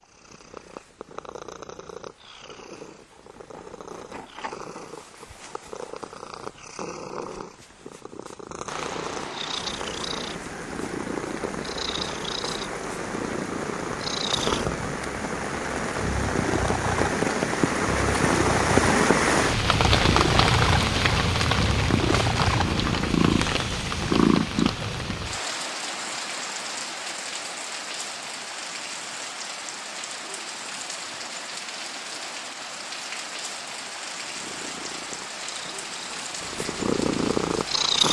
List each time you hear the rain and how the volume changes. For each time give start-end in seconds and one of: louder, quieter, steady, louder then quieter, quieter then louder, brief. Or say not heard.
8.7-38.0 louder then quieter.